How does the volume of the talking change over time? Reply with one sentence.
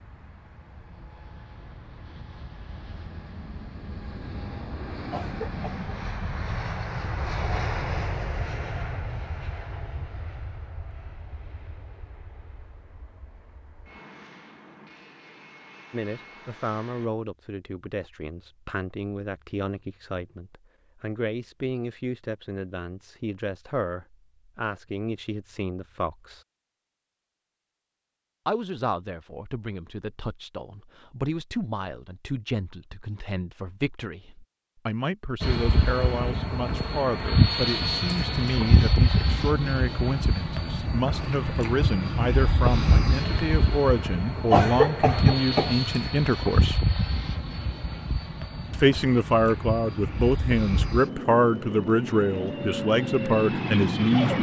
The loudness of the talking goes up.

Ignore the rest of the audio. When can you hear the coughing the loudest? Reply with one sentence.
The loudest moment of the coughing is at 45 seconds.